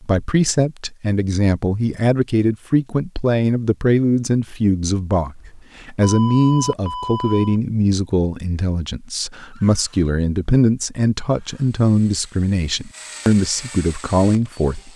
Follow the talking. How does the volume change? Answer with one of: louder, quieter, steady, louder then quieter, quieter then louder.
steady.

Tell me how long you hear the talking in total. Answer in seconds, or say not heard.
15 s.